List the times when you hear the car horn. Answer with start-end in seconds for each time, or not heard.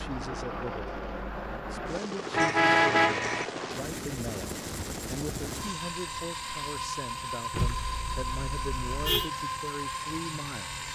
2.3-3.5, 7.5-9.3.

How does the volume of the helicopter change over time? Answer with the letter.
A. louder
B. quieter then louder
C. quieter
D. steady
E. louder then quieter
D.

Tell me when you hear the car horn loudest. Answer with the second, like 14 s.
3 s.